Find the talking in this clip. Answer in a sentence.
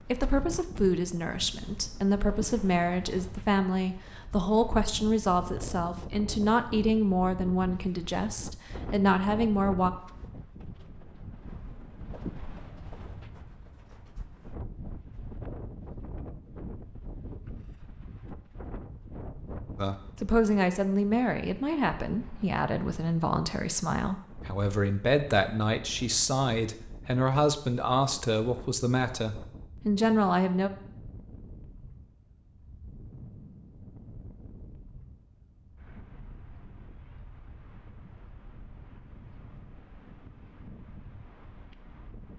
The talking can be heard from 0.0 to 9.9 s and from 19.8 to 30.7 s.